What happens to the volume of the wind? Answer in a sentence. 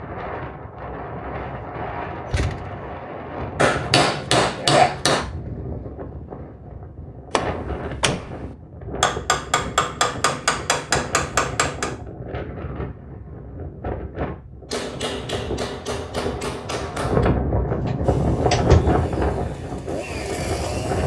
The volume of the wind goes up.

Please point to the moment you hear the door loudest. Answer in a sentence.
The loudest moment of the door is at 19 seconds.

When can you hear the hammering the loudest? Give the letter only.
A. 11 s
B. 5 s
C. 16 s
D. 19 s
B.